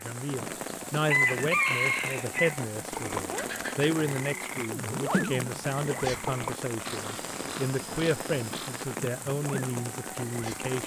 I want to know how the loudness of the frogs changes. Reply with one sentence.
The volume of the frogs goes up, then down.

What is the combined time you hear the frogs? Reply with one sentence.
You can hear the frogs for 8 seconds altogether.